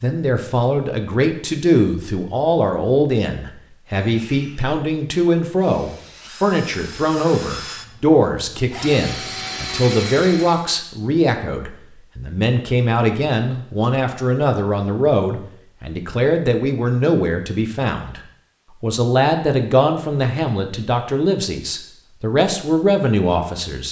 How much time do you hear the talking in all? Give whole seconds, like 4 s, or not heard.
23 s.